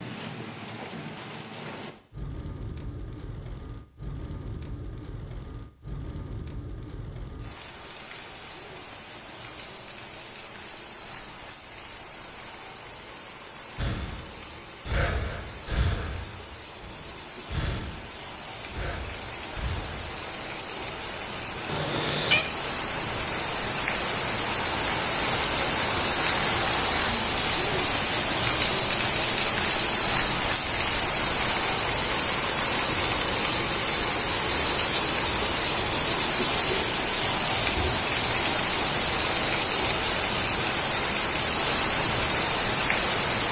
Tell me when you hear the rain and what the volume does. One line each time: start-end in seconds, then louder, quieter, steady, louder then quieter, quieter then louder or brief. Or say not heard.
0.0-43.4 louder.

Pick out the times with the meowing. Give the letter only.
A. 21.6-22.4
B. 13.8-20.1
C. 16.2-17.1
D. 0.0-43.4
A.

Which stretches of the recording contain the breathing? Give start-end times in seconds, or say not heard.
13.8-20.1.